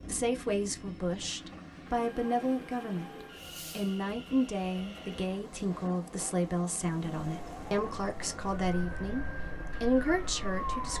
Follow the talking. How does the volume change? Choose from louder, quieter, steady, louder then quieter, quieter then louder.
steady.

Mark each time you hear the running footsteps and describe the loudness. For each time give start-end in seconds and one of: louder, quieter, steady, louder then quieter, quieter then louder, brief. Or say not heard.
not heard.